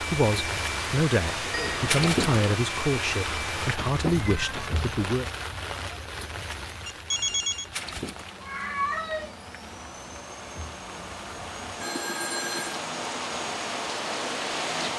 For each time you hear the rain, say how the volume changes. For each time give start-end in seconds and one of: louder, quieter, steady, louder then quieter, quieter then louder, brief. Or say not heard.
0.0-14.9 quieter then louder.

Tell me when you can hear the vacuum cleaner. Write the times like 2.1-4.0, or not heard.
0.0-3.8, 7.8-14.9.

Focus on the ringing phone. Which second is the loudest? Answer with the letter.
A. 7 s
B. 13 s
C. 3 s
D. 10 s
A.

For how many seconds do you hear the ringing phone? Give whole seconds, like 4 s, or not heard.
3 s.